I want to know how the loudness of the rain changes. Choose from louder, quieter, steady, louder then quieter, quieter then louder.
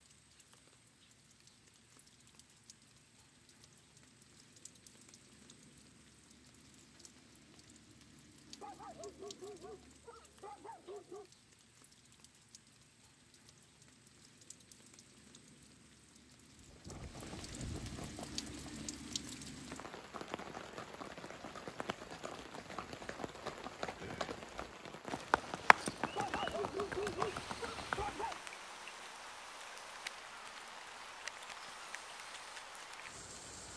louder.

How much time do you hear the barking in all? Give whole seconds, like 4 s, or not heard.
5 s.